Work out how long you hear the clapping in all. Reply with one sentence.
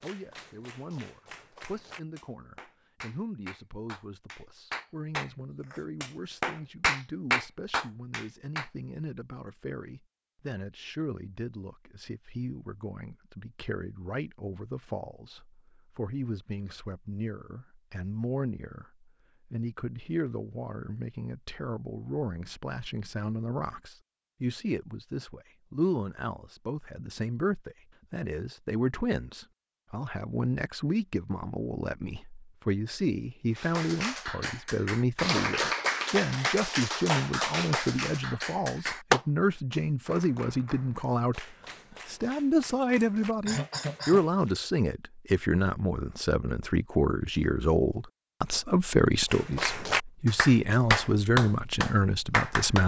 You can hear the clapping for 23 seconds altogether.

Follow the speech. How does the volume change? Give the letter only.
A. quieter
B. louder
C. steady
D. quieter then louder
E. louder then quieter
B.